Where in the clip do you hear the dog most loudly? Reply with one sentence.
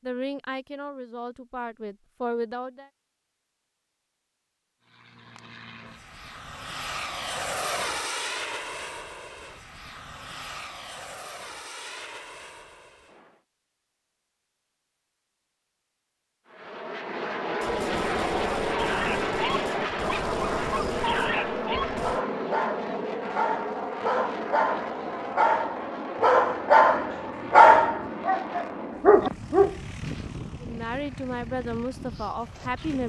The loudest moment of the dog is at 28 seconds.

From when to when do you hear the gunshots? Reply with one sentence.
You can hear the gunshots from 17.6 to 22.2 s.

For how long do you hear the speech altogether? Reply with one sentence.
The speech can be heard for 5 seconds in total.